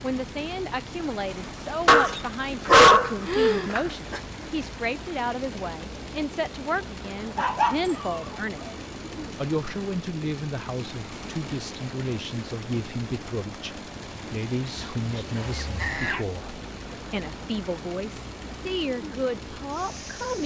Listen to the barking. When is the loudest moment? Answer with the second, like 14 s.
3 s.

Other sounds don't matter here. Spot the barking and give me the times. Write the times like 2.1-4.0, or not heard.
1.9-4.2, 7.3-8.2, 14.8-16.2.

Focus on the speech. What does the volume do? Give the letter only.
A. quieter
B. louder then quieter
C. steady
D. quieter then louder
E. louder
C.